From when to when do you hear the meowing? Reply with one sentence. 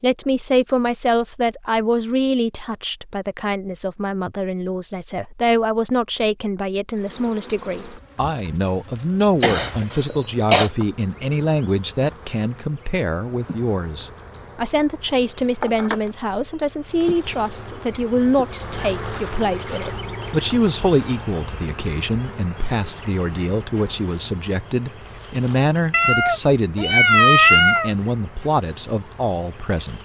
The meowing can be heard from 25.9 to 27.9 s.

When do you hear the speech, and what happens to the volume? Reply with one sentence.
The speech can be heard from 0.0 to 30.0 s, at a steady volume.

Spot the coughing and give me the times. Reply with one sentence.
The coughing can be heard from 9.4 to 10.7 s.